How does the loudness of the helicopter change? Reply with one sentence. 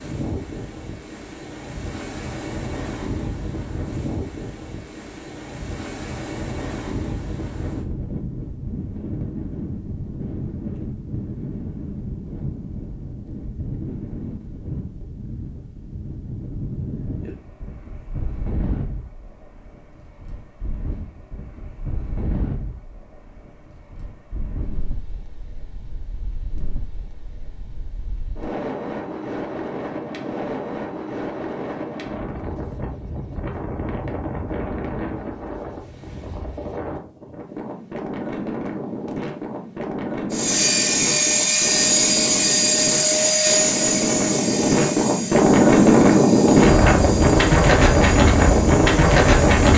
The volume of the helicopter goes down.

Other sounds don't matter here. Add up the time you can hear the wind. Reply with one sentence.
The wind can be heard for 50 seconds in total.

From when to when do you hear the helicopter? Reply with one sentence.
The helicopter can be heard from 40.3 to 49.7 s.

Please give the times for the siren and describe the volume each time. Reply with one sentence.
You can't hear the siren here.